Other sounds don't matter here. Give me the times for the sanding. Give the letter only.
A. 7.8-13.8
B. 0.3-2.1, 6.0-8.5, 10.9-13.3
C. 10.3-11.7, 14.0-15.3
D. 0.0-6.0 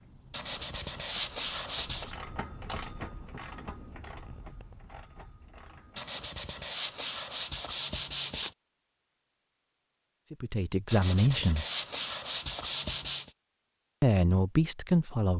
B.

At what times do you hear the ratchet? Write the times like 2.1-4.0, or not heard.
0.0-6.0.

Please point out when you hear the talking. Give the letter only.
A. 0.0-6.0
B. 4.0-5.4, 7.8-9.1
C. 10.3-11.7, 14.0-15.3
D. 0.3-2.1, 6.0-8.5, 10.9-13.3
C.